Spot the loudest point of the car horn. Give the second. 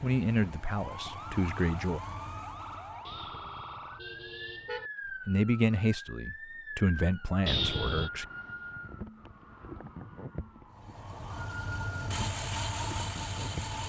8 s.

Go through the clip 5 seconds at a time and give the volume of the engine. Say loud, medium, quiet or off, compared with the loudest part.
medium, off, loud.